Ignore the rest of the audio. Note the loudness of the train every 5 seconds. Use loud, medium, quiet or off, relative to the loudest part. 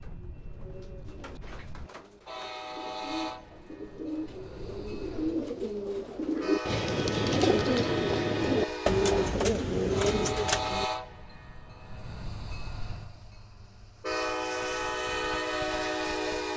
quiet, medium, medium, loud.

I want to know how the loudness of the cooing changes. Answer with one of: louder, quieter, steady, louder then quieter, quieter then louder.
louder.